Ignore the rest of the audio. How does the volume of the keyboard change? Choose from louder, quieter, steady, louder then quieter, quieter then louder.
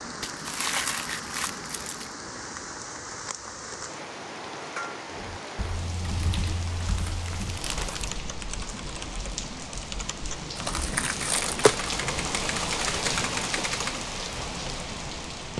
louder.